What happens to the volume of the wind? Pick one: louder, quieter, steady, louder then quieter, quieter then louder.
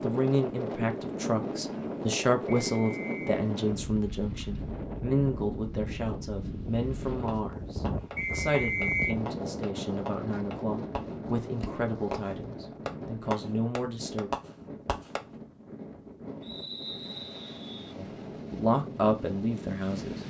quieter.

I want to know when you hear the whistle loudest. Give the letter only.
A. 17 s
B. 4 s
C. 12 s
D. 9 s
D.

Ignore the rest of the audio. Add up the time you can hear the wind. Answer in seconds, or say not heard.
20 s.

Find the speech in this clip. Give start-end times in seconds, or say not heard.
0.0-14.3, 17.9-20.2.